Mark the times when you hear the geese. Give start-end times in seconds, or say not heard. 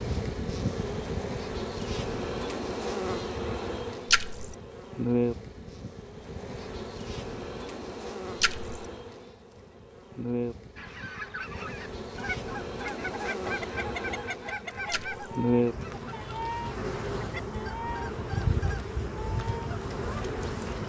10.8-20.8.